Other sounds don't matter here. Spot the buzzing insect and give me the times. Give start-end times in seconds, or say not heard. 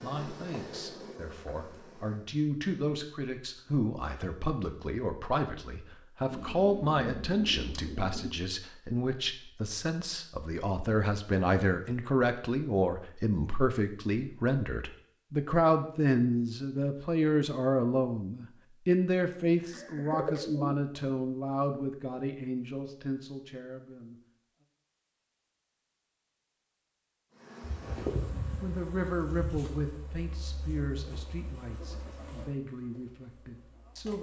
0.0-2.3, 27.3-34.1.